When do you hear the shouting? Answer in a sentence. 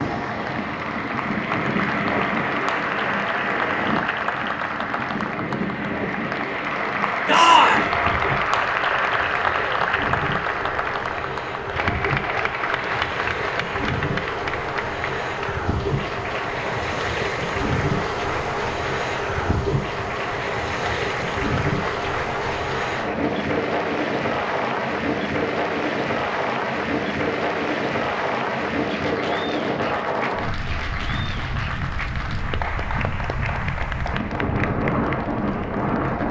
The shouting can be heard from 7.2 to 7.9 s.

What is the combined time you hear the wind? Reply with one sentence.
The wind can be heard for 36 seconds in total.